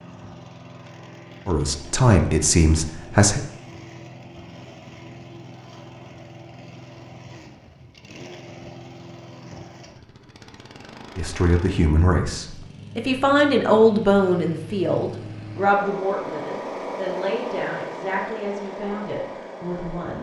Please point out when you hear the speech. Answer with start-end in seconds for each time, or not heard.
1.4-3.4, 11.2-20.1.